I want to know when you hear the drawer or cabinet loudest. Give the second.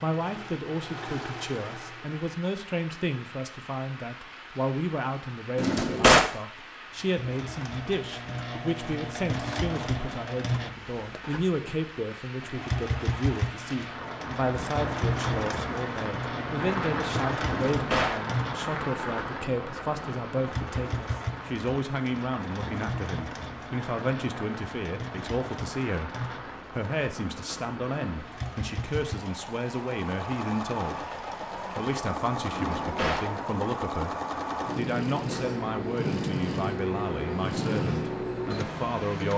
6 s.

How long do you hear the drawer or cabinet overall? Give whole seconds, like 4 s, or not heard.
2 s.